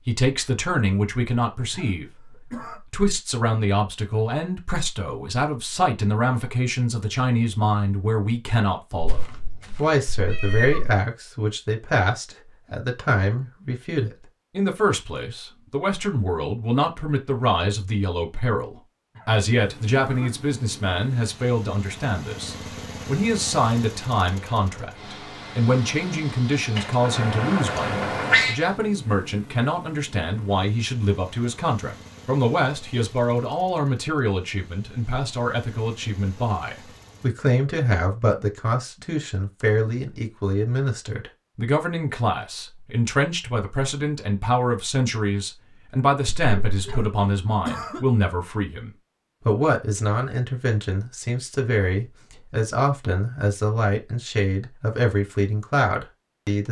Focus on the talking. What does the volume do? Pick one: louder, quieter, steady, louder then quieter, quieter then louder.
steady.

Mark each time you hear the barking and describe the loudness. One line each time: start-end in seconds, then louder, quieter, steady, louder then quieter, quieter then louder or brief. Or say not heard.
not heard.